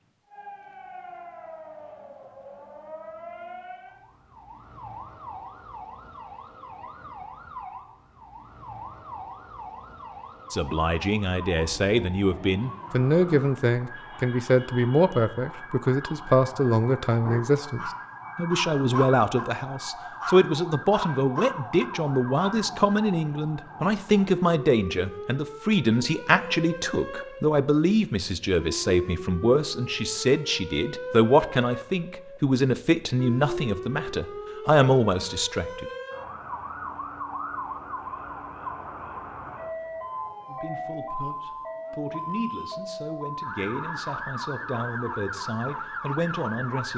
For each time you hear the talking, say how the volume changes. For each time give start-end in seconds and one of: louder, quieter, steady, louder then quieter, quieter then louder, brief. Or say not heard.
10.5-35.9 steady
40.5-46.9 louder.